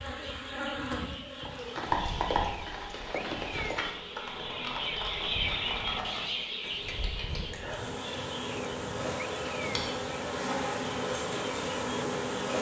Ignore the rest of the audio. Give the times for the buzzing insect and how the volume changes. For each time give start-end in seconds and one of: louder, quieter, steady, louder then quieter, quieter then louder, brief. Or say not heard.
0.0-12.5 quieter then louder.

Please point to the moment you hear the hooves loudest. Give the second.
2 s.